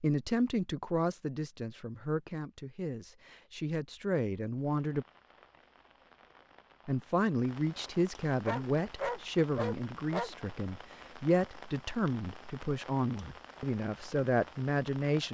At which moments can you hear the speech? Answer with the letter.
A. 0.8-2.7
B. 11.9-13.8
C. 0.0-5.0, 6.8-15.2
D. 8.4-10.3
C.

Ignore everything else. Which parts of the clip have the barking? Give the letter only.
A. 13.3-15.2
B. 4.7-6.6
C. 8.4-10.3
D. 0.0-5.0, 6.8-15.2
C.